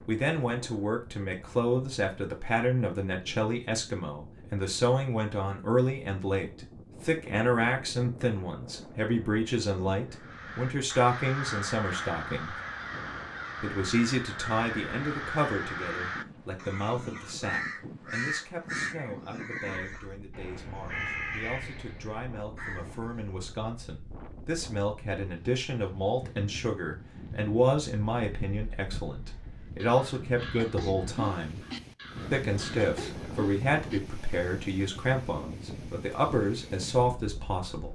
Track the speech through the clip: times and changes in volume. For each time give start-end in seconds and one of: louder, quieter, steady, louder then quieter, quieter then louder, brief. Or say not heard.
0.1-12.6 steady
13.6-31.6 quieter then louder
32.3-37.9 steady.